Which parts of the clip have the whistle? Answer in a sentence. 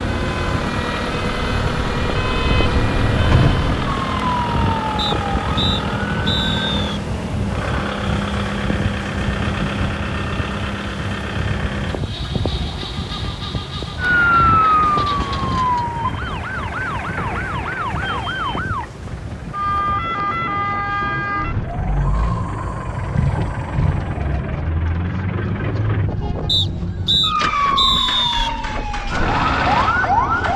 You can hear the whistle from 5.0 to 7.0 s and from 26.4 to 28.5 s.